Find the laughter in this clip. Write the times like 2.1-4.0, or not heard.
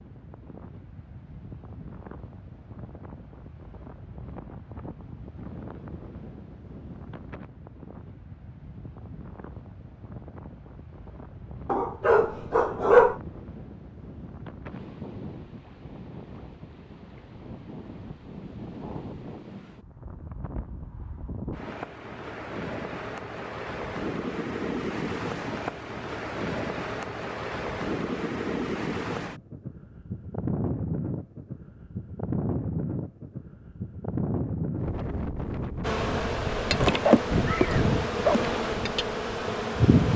not heard.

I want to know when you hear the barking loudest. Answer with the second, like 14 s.
13 s.